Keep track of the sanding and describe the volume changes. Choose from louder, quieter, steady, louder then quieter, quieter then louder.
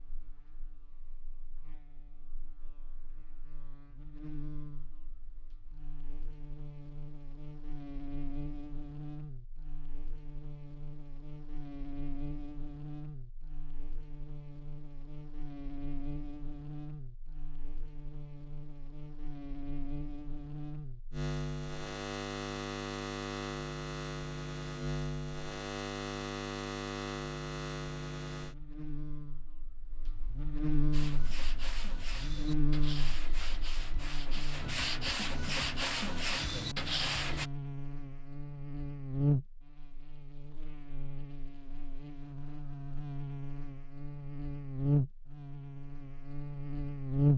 louder.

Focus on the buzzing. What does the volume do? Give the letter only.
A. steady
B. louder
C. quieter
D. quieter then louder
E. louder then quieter
B.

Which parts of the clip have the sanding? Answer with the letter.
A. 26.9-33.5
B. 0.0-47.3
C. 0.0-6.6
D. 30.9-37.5
D.